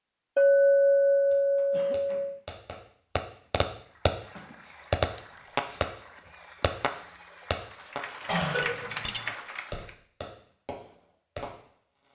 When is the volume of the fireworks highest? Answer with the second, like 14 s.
5 s.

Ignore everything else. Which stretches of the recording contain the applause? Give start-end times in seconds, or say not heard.
3.8-9.9.